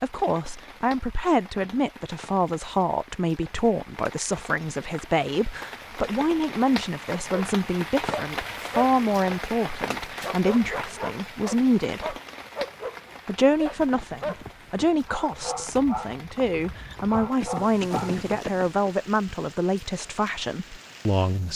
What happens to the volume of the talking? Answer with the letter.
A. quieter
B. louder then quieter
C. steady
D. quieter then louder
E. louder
C.